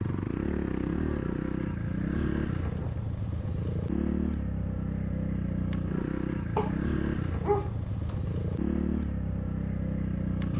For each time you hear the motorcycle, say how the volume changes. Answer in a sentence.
You can hear the motorcycle from 0.0 to 10.5 s, at a steady volume.